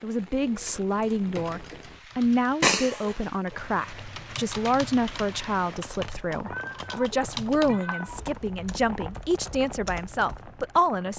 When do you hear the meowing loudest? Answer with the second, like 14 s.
3 s.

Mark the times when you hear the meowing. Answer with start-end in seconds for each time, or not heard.
2.6-3.1, 6.5-8.4.